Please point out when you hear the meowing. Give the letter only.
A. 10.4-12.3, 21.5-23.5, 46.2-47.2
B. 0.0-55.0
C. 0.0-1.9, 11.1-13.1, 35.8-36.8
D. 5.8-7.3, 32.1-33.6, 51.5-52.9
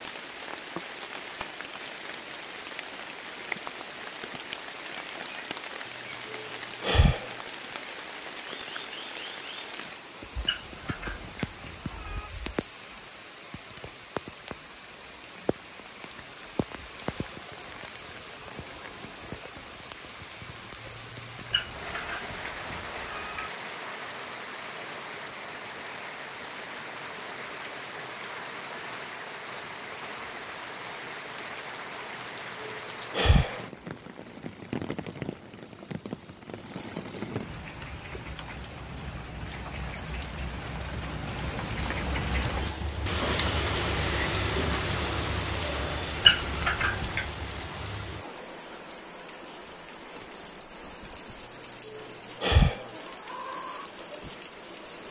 A.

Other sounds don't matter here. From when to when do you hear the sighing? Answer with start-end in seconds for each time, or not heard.
5.8-7.3, 32.1-33.6, 51.5-52.9.